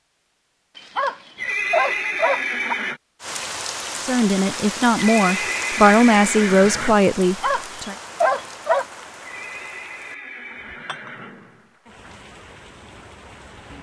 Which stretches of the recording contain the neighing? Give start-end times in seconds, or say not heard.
1.4-3.0, 5.0-7.0, 9.2-11.7.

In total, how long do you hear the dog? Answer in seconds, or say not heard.
4 s.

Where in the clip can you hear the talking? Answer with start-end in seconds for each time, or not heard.
4.0-8.0.